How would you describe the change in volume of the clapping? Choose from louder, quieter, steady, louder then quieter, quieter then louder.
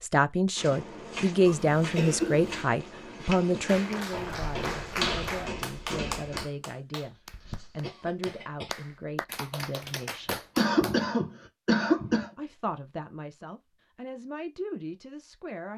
quieter then louder.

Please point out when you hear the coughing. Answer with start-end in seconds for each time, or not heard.
1.4-2.6, 7.2-8.8, 10.6-12.3.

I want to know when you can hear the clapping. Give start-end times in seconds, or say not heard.
3.6-11.0.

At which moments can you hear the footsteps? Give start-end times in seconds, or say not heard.
0.6-6.5.